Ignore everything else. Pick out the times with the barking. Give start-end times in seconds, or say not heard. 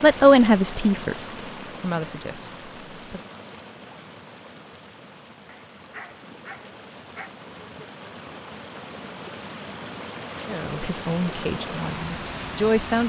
5.5-7.3.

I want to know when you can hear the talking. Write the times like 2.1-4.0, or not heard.
0.0-3.2, 10.4-13.0.